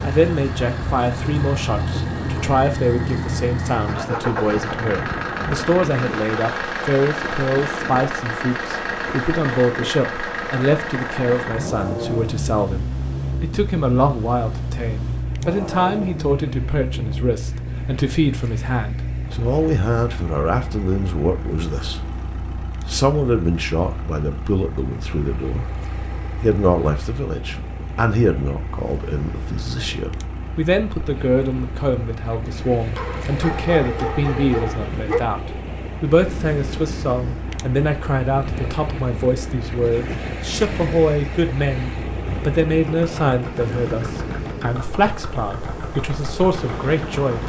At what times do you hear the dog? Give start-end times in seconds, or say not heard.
33.0-35.2.